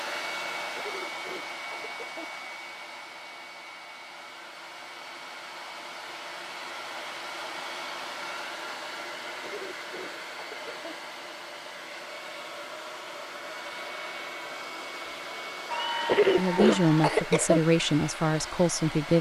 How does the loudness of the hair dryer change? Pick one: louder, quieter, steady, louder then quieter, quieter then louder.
steady.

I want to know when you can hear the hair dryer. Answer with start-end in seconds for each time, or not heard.
0.0-19.1.